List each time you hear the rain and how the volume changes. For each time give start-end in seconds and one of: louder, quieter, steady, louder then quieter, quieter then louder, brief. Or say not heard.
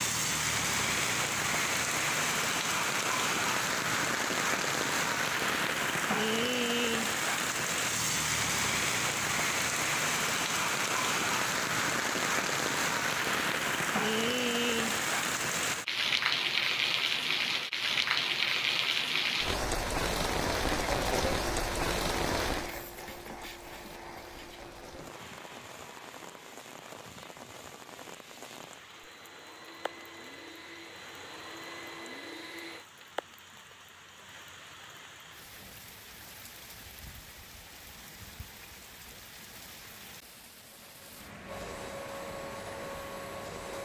0.0-43.8 quieter.